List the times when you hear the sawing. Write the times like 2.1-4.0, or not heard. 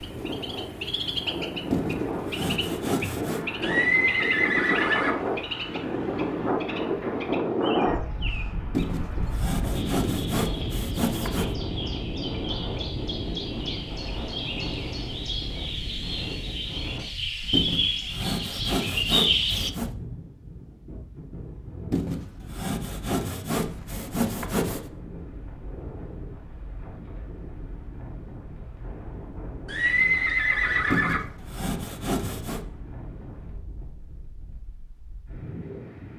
1.7-3.5, 8.7-11.6, 17.5-19.9, 21.9-24.9, 30.9-32.6.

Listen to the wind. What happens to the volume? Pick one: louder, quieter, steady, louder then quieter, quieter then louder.
quieter.